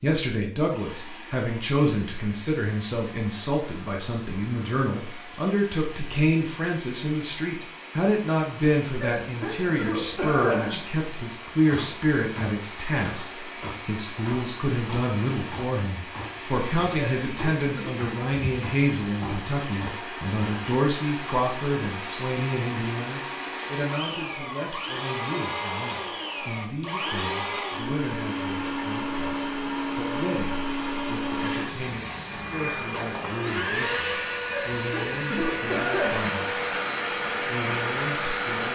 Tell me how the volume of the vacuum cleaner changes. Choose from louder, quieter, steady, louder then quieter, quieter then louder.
louder.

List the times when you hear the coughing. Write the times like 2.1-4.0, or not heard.
9.0-10.8, 16.9-18.0, 34.5-36.4.